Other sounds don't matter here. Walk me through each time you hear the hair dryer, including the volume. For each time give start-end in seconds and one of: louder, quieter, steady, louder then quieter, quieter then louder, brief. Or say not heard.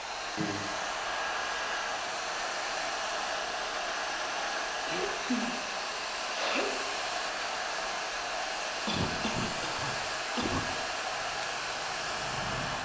0.0-12.8 steady.